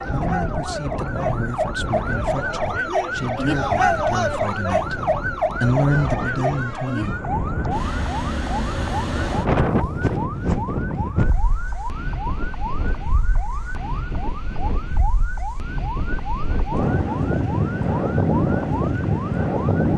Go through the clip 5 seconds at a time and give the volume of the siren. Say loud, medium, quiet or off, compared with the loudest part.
loud, loud, medium, medium.